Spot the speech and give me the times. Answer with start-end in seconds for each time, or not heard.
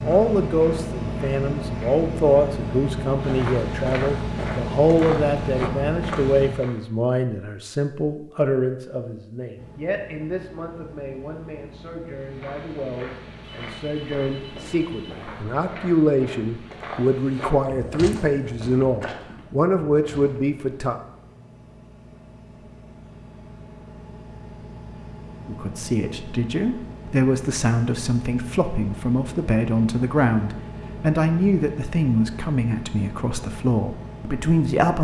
0.0-20.9, 25.4-34.9.